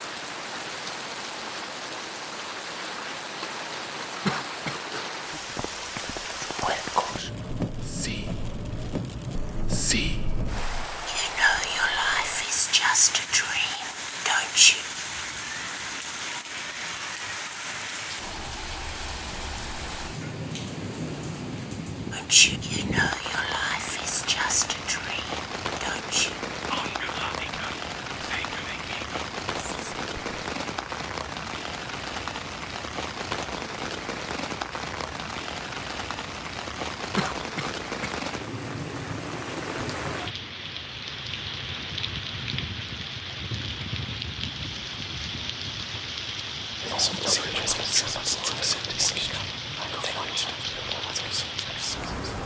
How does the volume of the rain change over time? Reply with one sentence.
The loudness of the rain stays about the same.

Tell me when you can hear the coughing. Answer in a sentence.
The coughing can be heard from 4.2 to 4.8 s and from 37.1 to 38.1 s.